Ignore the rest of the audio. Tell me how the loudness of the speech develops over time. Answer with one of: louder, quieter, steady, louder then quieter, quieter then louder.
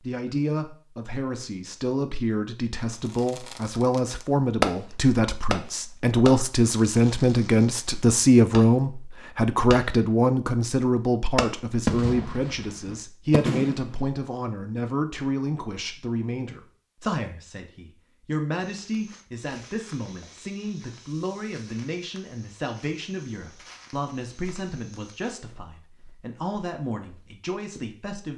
louder then quieter.